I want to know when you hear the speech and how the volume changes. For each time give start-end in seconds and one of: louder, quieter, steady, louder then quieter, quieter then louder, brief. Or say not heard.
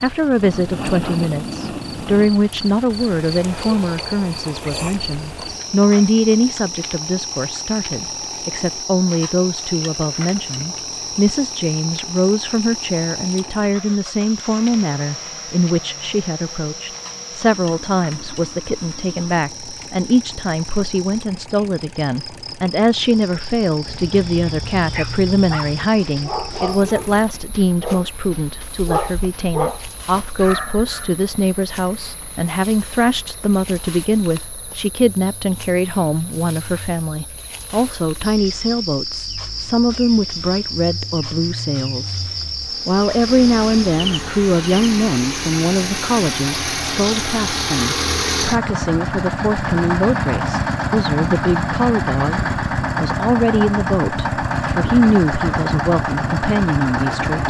0.0-57.4 steady.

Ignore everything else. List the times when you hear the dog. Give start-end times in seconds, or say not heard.
23.9-31.1.